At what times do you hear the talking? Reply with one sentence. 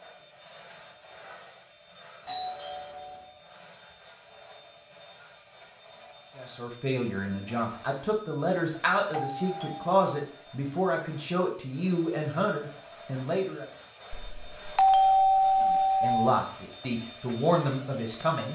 You can hear the talking from 6.3 to 13.7 s and from 15.6 to 18.4 s.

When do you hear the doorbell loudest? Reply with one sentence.
The loudest moment of the doorbell is at 15 seconds.